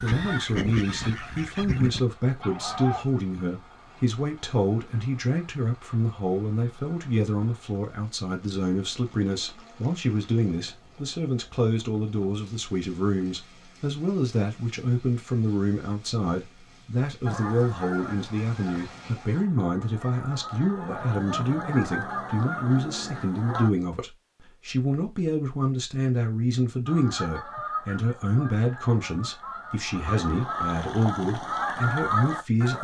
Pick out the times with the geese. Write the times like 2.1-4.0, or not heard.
0.0-3.0, 17.2-23.7, 26.9-32.7.